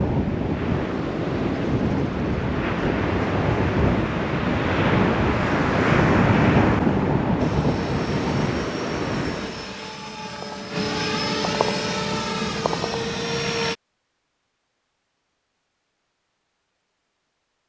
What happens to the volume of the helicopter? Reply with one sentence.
The volume of the helicopter goes up.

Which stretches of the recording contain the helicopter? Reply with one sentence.
You can hear the helicopter from 7.3 to 13.8 s.